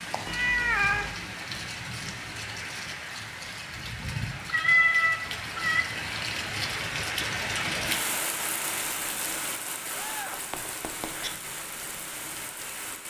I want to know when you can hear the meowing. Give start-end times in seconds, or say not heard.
0.2-1.1, 4.5-5.8, 9.9-11.3.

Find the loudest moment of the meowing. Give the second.
5 s.